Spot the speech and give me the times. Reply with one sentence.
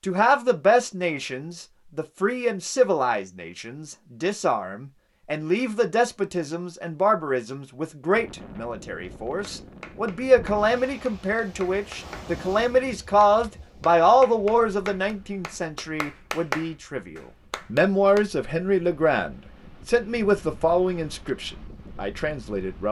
The speech can be heard from 0.0 to 22.8 s.